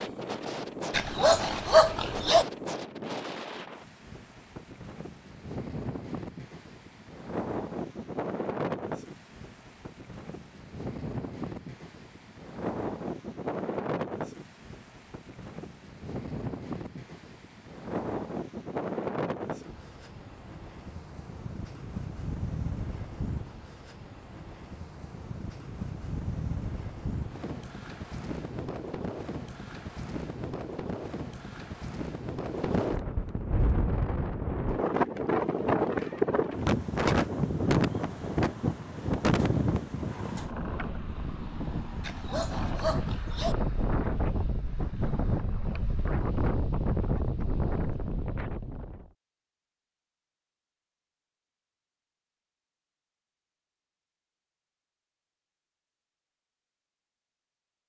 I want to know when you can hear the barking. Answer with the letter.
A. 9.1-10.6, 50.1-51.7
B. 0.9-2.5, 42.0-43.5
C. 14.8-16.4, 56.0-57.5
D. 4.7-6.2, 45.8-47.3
B.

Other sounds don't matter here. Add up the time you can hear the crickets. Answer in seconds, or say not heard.
not heard.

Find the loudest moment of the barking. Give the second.
2 s.